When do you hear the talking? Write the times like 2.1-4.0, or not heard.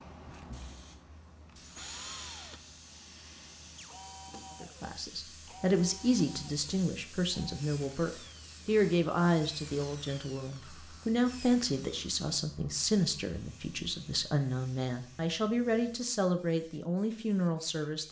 4.6-18.0.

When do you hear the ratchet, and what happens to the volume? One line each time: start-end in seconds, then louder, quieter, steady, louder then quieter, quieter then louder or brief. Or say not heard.
not heard.